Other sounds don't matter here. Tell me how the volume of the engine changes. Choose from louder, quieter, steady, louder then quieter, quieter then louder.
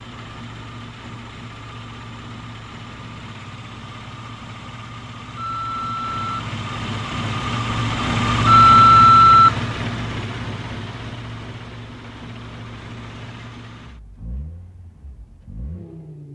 louder then quieter.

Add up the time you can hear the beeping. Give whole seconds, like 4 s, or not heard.
2 s.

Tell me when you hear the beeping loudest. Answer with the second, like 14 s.
9 s.